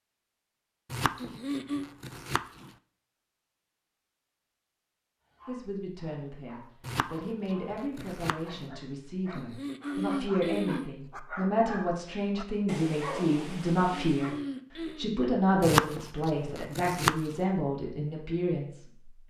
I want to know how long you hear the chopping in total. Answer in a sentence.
You can hear the chopping for 5 seconds altogether.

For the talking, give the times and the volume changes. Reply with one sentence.
The talking can be heard from 5.5 to 14.3 s, getting louder; and from 14.9 to 19.1 s, getting quieter.